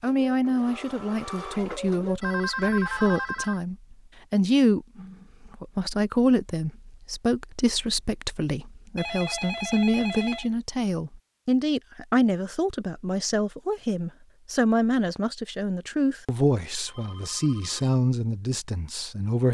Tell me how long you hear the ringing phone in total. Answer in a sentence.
The ringing phone can be heard for 4 seconds in total.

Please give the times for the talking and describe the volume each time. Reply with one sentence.
You can hear the talking from 0.0 to 19.5 s, at a steady volume.